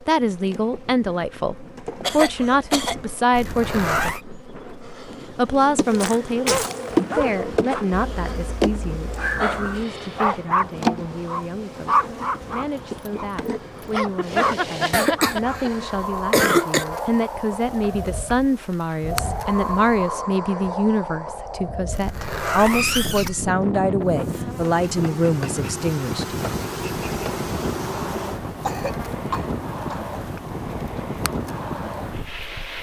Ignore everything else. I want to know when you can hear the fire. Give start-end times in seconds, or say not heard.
not heard.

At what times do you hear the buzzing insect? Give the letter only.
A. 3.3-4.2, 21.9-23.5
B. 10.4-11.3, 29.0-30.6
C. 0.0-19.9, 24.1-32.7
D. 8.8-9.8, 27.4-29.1
C.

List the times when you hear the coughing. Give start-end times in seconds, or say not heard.
2.0-3.0, 14.9-16.9, 28.6-30.0.